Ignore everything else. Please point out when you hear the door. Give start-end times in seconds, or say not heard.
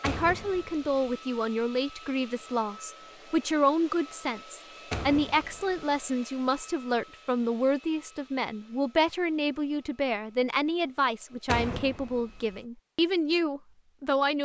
0.0-1.1, 4.9-5.8, 11.4-12.6.